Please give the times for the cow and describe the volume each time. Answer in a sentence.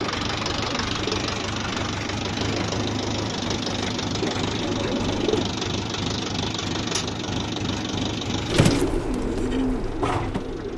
You can't hear the cow here.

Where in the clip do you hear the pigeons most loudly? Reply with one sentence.
The volume of the pigeons peaks at 9 seconds.